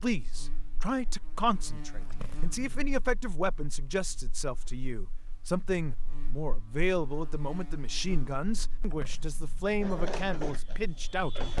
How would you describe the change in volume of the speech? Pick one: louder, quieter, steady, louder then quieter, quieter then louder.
steady.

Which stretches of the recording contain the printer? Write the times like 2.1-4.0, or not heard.
9.8-11.5.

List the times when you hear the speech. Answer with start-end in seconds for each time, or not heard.
0.0-11.4.